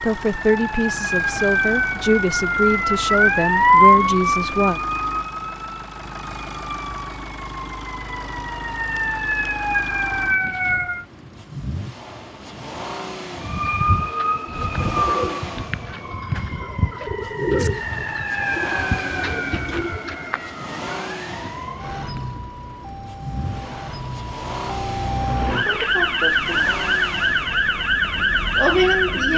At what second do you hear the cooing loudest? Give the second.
18 s.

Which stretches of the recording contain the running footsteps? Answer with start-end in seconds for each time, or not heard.
not heard.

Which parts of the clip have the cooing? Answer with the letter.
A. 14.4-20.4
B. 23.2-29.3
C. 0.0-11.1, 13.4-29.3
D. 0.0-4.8
A.